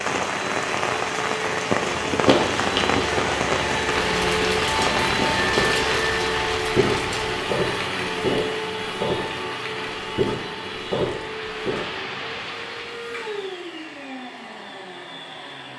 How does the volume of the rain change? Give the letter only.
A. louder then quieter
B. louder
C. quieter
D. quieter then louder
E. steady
C.